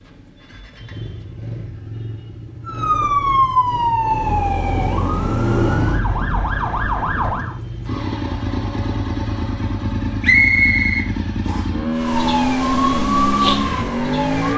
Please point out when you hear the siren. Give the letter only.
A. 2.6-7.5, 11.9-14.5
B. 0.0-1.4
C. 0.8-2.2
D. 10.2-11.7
A.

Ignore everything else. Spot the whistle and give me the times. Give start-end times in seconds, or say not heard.
10.2-11.7.